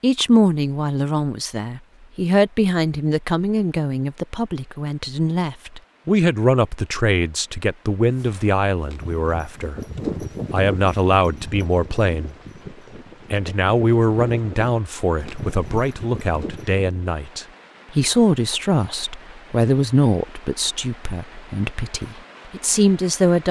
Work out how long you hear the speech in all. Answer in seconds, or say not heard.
22 s.